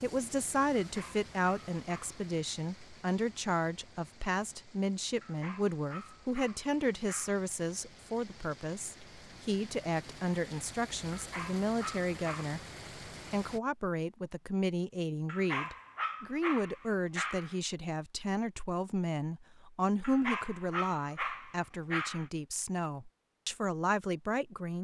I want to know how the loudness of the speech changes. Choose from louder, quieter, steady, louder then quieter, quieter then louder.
steady.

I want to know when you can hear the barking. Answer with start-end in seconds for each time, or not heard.
0.8-2.2, 5.2-7.5, 11.1-12.6, 15.2-17.6, 20.0-22.3.